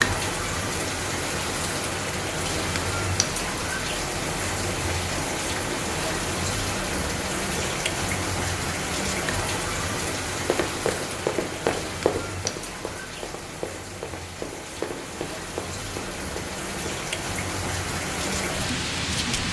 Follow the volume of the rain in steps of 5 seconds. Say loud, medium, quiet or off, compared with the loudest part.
loud, loud, medium, loud.